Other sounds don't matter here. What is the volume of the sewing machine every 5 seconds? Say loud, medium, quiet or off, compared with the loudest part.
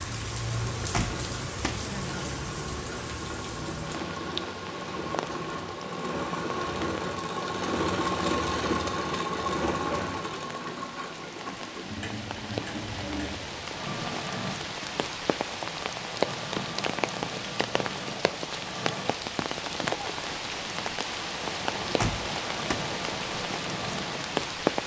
medium, loud, medium, medium, medium.